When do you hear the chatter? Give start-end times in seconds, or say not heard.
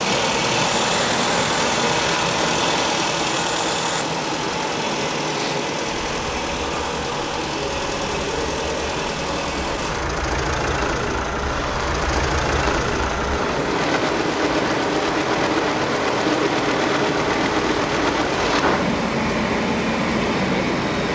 not heard.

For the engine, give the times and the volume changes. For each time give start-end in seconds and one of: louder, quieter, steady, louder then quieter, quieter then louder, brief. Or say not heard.
0.0-21.1 steady.